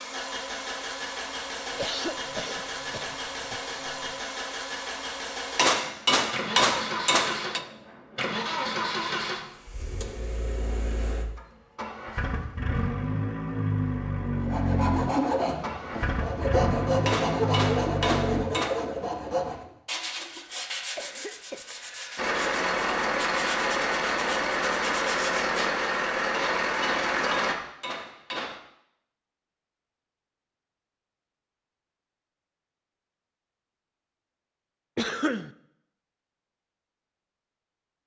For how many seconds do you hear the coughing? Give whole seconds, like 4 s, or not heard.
5 s.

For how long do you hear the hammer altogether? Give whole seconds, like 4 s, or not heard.
6 s.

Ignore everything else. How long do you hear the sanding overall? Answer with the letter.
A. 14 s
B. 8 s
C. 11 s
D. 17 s
C.